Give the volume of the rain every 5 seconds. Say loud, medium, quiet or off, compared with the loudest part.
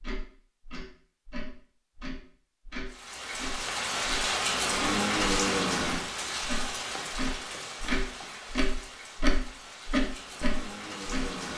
loud, loud, medium.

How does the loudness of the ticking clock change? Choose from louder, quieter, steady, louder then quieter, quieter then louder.
louder.